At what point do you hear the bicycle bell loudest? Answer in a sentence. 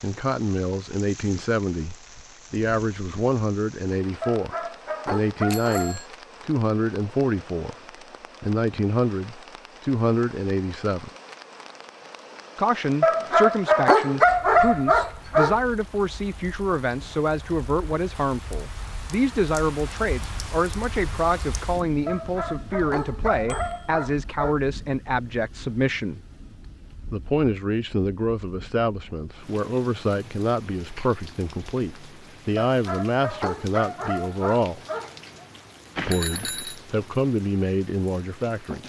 The loudest moment of the bicycle bell is at 36 seconds.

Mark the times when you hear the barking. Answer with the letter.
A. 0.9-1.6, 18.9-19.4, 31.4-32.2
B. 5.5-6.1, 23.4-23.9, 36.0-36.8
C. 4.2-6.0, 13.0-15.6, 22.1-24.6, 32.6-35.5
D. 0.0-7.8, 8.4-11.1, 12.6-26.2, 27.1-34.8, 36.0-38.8
C.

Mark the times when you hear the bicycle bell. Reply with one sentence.
The bicycle bell can be heard from 5.5 to 6.1 s, from 23.4 to 23.9 s and from 36.0 to 36.8 s.